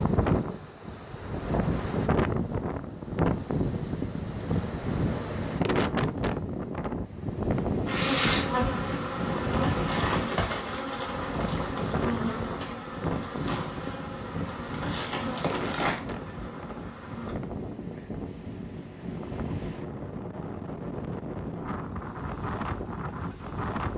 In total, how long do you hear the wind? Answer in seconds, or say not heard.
24 s.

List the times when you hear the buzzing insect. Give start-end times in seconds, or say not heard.
7.8-17.4.